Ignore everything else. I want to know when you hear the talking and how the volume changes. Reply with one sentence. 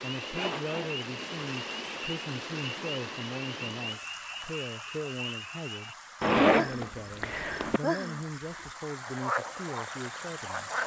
The talking can be heard from 0.0 to 10.7 s, at a steady volume.